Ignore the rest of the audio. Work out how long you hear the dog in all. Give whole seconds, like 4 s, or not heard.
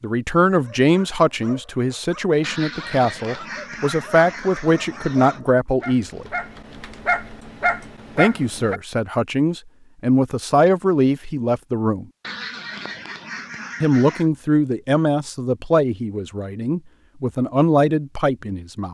8 s.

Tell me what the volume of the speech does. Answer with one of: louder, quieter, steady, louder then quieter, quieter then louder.
steady.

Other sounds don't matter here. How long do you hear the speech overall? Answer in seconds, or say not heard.
15 s.